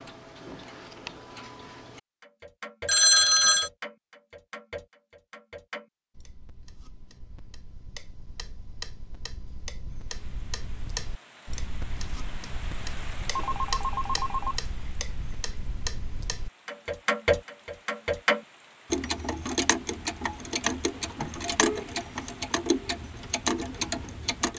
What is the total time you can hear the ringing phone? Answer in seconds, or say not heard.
3 s.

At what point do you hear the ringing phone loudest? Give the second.
3 s.